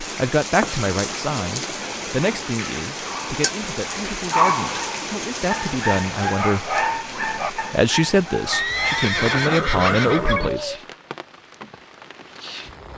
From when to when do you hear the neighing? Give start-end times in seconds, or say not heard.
8.5-10.6.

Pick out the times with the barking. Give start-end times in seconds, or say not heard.
3.0-10.8.